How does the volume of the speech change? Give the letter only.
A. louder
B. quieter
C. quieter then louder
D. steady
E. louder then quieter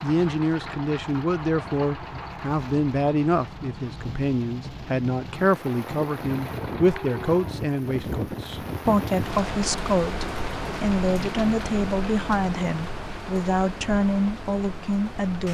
D.